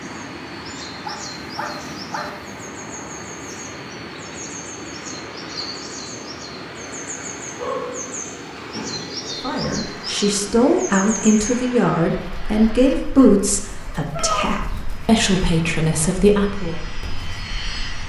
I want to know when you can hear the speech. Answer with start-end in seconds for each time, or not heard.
9.4-16.8.